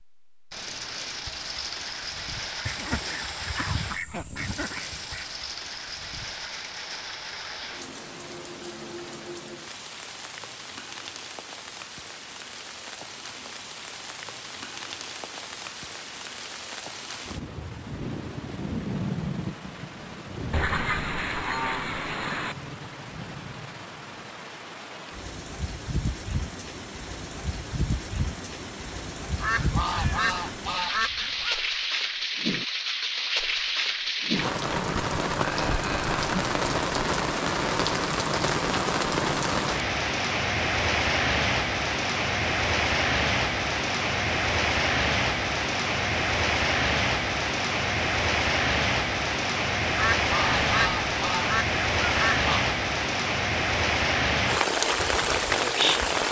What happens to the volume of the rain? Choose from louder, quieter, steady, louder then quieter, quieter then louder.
louder.